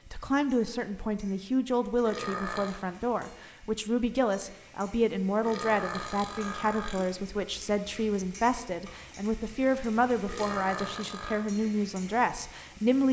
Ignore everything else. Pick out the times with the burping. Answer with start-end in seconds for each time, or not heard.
2.0-2.8, 5.4-7.1, 10.2-11.4.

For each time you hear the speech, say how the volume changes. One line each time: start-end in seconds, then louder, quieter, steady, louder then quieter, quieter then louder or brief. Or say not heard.
0.1-13.0 steady.